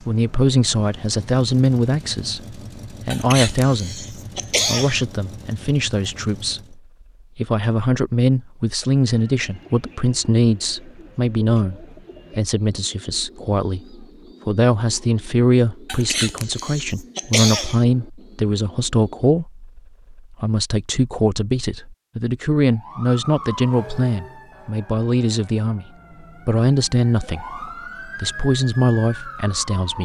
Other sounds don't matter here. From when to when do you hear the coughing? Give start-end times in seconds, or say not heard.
3.1-5.0, 15.8-17.9.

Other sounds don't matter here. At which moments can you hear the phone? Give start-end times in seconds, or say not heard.
not heard.